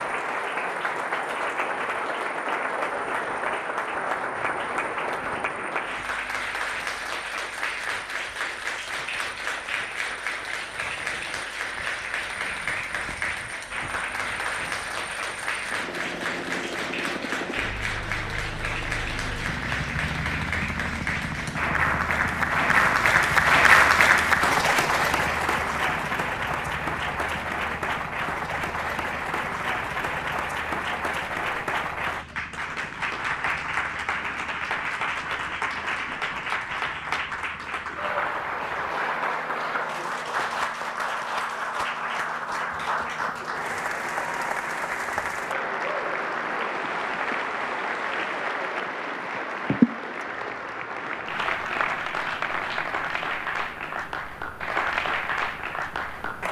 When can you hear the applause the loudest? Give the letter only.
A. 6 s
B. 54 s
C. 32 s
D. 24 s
D.